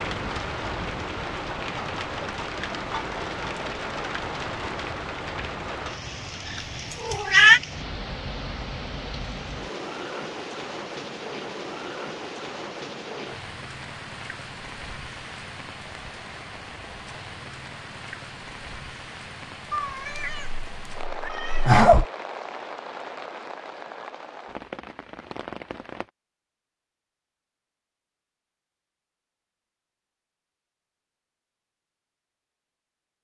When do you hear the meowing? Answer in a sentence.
You can hear the meowing from 6.5 to 7.6 s and from 19.7 to 22.1 s.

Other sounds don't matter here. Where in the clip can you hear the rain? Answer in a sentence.
You can hear the rain from 0.0 to 26.1 s.